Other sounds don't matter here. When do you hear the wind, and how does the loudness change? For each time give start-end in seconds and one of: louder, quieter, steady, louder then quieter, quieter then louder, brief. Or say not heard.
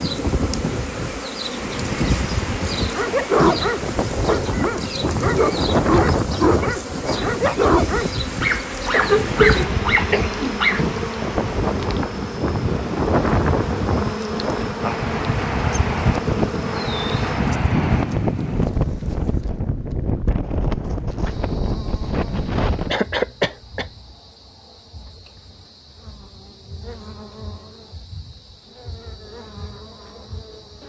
0.0-23.0 steady.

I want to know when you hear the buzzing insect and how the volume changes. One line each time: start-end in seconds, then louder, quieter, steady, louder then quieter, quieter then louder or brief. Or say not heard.
0.0-30.8 quieter.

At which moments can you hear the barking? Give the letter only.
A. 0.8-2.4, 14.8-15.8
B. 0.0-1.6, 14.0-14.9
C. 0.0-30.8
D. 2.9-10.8
D.